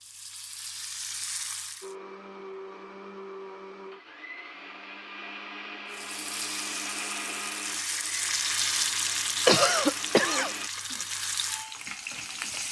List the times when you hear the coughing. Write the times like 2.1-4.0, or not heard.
9.4-10.5.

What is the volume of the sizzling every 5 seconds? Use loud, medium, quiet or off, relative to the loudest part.
medium, loud, loud.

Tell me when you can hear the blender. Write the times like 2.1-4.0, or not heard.
1.8-10.7.